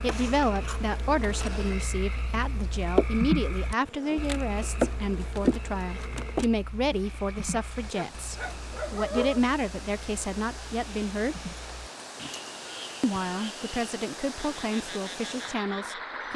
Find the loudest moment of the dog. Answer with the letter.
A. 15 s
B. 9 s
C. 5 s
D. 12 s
B.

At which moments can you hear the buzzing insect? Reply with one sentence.
The buzzing insect can be heard from 0.0 to 6.5 s.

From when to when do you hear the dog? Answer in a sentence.
You can hear the dog from 7.9 to 9.4 s.